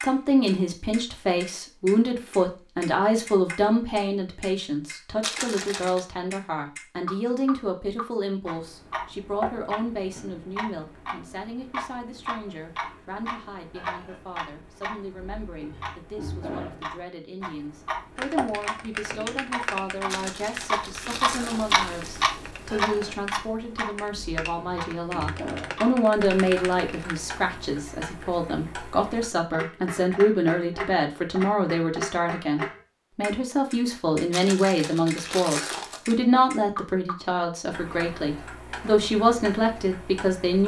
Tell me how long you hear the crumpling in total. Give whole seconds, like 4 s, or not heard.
5 s.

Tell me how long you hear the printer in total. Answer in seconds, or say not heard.
not heard.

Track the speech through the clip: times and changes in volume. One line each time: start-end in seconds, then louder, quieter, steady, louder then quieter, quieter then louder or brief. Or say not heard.
0.0-40.6 quieter then louder.